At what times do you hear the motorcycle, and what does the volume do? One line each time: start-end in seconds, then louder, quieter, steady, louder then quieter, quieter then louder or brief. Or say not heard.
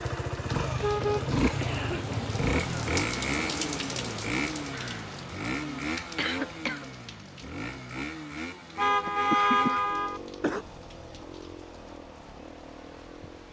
0.0-13.4 quieter.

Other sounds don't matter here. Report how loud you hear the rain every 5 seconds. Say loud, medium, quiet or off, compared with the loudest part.
loud, medium, quiet.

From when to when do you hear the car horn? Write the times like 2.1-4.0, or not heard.
0.6-2.5, 8.8-10.2.